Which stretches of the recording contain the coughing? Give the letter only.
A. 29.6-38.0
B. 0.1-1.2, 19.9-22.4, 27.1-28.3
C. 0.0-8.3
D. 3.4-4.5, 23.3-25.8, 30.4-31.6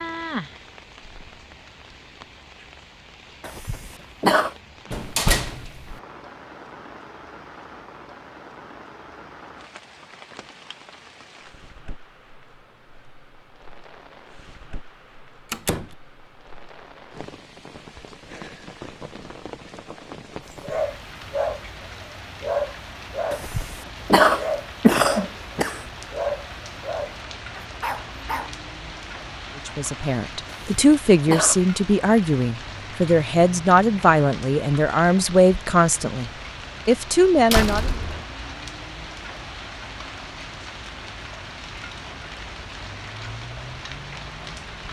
D.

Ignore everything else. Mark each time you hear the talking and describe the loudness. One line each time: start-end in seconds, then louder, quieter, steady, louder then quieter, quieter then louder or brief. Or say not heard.
29.6-38.0 steady.